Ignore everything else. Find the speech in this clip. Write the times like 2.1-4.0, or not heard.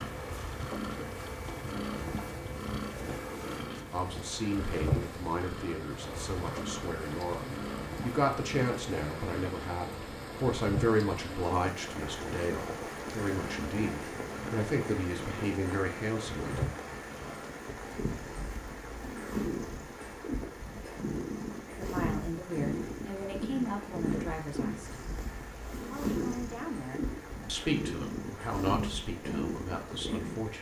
3.9-16.7, 21.8-24.9, 25.8-30.5.